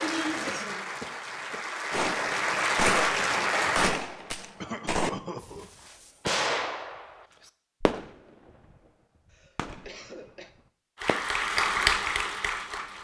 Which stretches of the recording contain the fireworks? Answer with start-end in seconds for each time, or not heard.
1.9-8.8, 9.6-11.2.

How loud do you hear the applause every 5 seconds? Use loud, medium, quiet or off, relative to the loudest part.
loud, off, loud.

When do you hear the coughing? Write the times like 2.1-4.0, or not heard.
0.5-1.6, 4.6-5.7, 9.3-10.5.